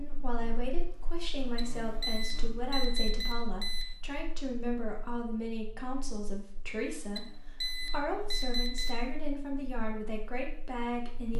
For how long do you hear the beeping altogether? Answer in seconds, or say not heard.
4 s.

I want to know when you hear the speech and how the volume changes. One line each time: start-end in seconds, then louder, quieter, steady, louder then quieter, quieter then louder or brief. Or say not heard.
0.0-11.3 steady.